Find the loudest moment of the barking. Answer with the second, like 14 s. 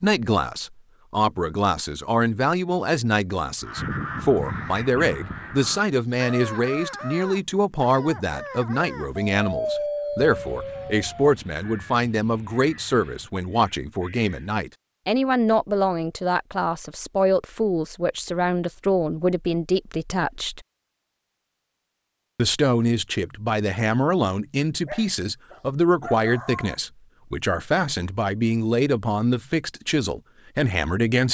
10 s.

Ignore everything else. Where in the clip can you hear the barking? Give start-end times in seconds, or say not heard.
9.2-11.3, 24.9-26.8.